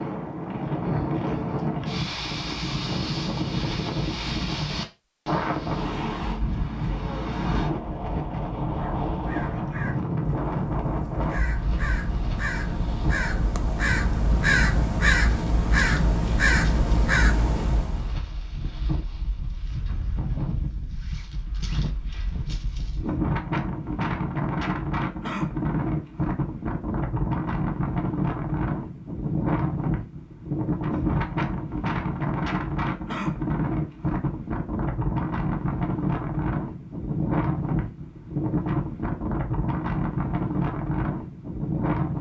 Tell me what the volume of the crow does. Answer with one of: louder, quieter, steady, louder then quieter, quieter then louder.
louder.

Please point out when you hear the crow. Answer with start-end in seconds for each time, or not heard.
8.8-18.1.